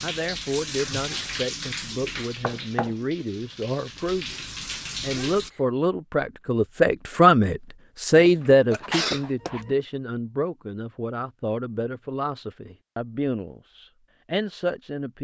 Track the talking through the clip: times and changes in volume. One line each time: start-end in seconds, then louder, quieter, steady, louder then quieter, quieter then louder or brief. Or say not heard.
0.0-15.1 louder then quieter.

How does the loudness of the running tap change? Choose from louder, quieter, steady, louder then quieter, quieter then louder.
quieter then louder.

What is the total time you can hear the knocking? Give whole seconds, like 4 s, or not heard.
2 s.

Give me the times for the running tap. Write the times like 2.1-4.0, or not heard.
0.0-5.5.